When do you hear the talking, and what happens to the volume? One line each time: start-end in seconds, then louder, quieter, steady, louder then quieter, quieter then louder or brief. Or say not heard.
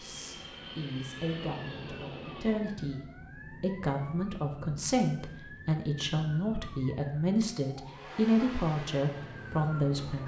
0.0-10.2 louder.